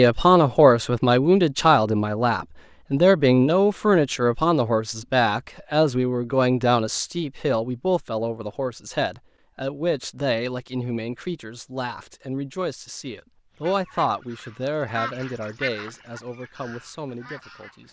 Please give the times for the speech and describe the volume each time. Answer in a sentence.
You can hear the speech from 0.0 to 17.8 s, getting quieter.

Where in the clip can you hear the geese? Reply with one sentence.
The geese can be heard from 13.6 to 17.8 s.